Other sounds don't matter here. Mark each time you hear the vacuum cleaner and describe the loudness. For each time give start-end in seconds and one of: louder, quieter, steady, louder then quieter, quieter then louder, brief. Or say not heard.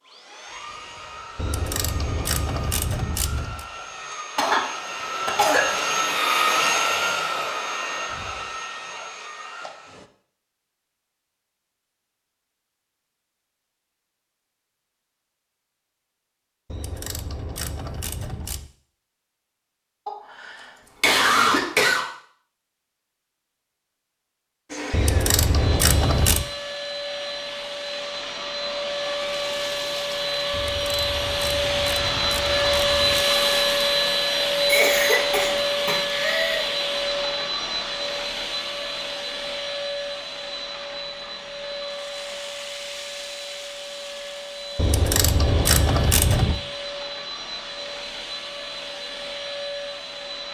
0.0-10.1 louder then quieter
24.6-50.4 louder then quieter.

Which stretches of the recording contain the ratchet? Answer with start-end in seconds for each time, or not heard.
1.4-3.6, 16.6-18.7, 24.9-26.4, 30.5-33.2, 44.8-46.6.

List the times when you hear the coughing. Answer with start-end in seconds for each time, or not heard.
4.3-5.8, 20.1-22.1, 34.6-36.6.